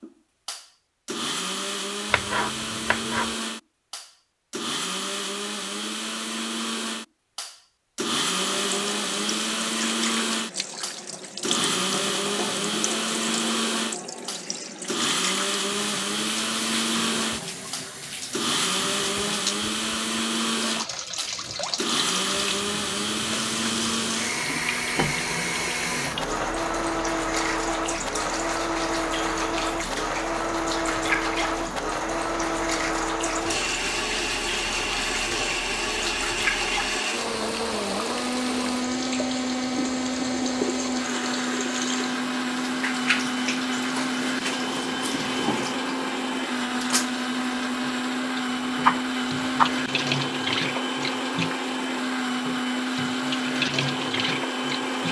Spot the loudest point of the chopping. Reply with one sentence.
The loudest moment of the chopping is at 49 seconds.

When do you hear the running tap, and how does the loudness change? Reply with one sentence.
You can hear the running tap from 8.3 to 55.0 s, at a steady volume.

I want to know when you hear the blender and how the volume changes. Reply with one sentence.
You can hear the blender from 0.0 to 55.0 s, at a steady volume.